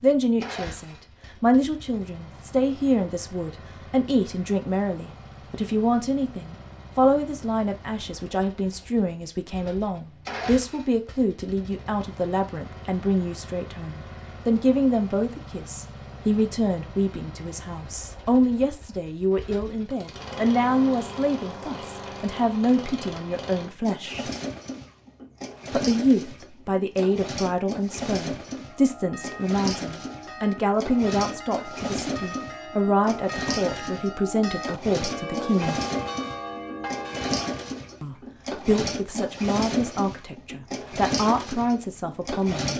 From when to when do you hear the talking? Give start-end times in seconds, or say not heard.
0.0-24.3, 25.7-35.8, 38.0-42.7.